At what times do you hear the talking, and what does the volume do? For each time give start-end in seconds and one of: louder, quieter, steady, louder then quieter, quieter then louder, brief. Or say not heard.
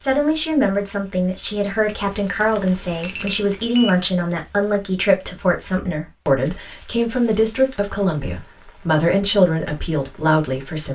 0.0-10.9 steady.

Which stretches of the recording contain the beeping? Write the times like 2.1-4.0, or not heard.
2.8-3.9.